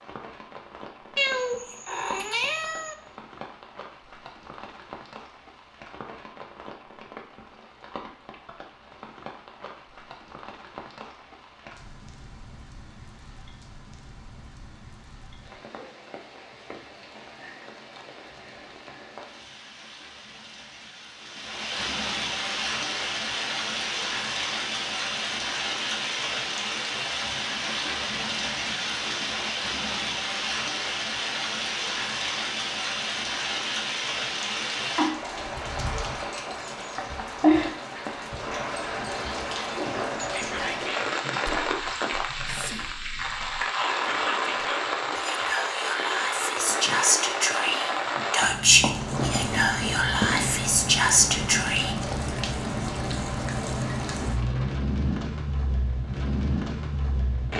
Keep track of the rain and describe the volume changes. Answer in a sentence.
The volume of the rain goes up.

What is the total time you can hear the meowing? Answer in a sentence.
The meowing can be heard for 2 seconds in total.